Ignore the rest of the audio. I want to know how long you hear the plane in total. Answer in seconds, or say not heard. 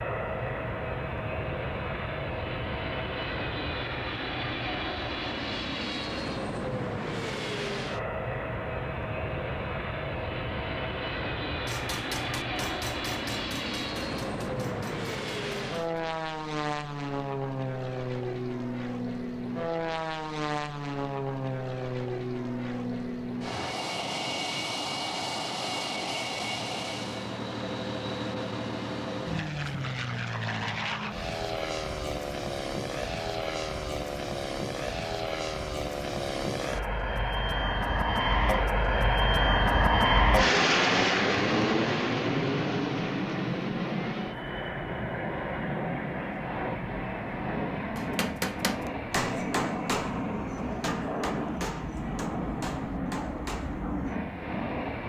55 s.